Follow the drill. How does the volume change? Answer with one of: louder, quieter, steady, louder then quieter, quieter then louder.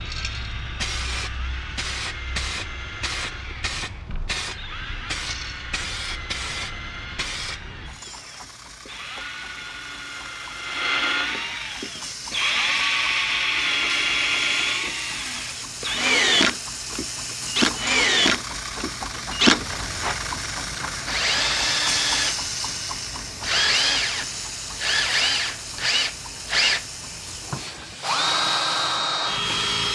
louder.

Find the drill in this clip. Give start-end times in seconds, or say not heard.
0.0-29.9.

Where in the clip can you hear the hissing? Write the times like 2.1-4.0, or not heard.
0.0-29.9.